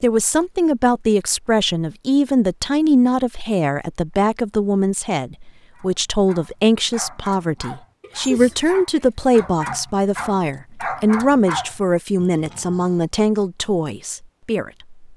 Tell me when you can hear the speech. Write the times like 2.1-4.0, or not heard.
0.0-14.9.